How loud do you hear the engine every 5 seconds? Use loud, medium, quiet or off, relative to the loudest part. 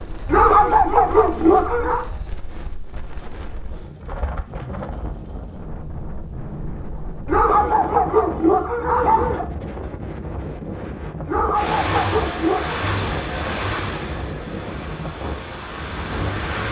off, off, loud, loud.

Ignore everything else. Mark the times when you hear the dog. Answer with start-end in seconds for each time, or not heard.
0.2-2.0, 7.2-9.4, 11.2-12.8.